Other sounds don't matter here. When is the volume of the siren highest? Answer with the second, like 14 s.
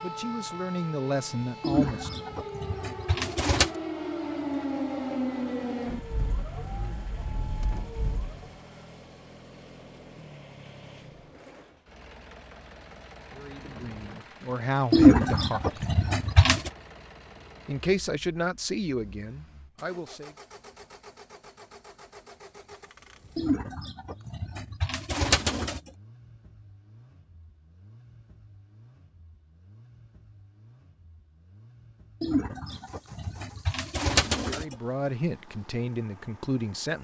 5 s.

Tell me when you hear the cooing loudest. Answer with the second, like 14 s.
15 s.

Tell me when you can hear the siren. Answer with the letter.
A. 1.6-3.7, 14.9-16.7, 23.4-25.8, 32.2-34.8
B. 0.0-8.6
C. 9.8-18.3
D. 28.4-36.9
B.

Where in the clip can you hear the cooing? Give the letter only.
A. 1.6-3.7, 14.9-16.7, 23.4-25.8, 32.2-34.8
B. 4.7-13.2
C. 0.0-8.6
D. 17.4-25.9
A.